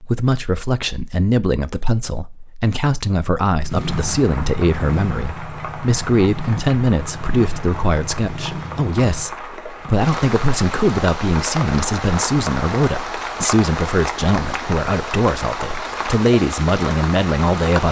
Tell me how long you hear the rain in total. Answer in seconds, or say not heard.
14 s.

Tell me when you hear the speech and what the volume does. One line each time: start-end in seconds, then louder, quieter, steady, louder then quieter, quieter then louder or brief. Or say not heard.
0.0-17.8 steady.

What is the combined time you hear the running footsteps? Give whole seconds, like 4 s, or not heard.
not heard.